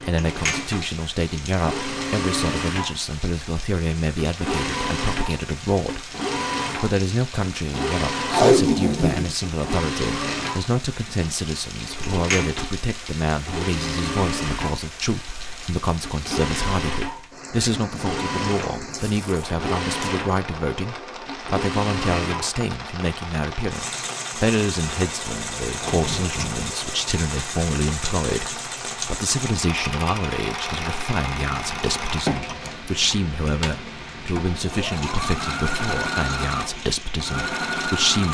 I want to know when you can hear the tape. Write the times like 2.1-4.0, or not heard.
8.2-10.2, 18.9-20.1, 25.6-26.6.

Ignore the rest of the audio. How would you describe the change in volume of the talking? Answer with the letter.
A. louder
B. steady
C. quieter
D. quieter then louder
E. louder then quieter
B.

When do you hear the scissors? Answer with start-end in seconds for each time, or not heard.
32.5-33.9.